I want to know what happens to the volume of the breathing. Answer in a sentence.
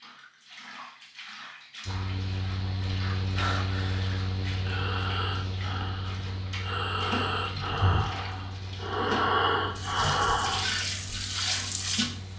The loudness of the breathing goes up.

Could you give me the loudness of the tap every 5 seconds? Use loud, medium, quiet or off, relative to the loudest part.
quiet, medium, loud.